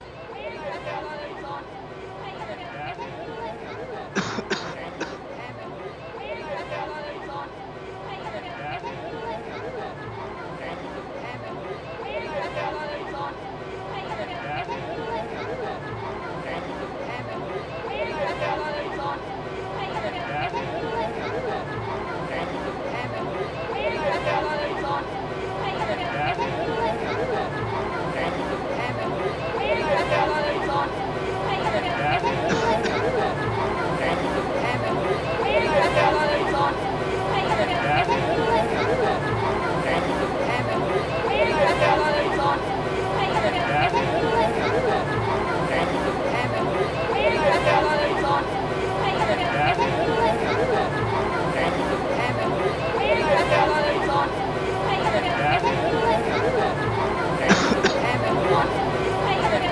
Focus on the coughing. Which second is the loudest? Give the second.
58 s.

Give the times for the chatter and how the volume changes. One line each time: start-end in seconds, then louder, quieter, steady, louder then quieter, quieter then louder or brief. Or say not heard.
0.0-59.6 louder.